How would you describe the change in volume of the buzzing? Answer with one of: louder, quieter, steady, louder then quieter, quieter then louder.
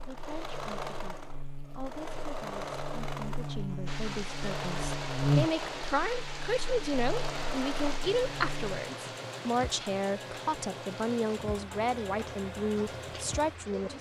louder then quieter.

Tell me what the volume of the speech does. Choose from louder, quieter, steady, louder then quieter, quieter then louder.
louder.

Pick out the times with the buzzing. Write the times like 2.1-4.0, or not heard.
0.0-8.8.